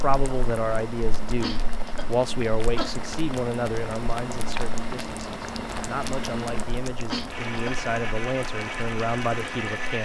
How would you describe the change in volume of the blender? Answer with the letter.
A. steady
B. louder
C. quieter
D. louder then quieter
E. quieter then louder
B.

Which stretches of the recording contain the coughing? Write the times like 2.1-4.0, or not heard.
1.2-2.9, 6.9-7.8.